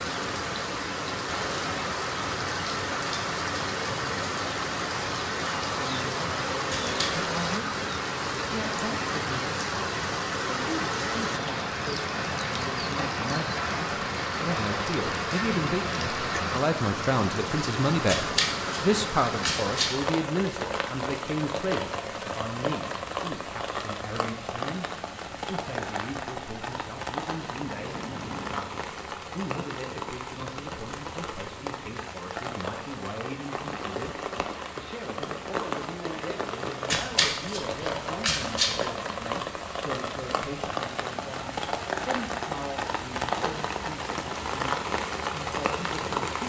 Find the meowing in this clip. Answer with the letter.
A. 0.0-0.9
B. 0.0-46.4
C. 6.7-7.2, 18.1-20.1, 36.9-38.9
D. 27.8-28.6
D.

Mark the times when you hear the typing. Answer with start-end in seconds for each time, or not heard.
not heard.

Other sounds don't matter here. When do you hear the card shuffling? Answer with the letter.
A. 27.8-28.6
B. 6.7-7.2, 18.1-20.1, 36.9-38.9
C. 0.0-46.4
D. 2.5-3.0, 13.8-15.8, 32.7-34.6
B.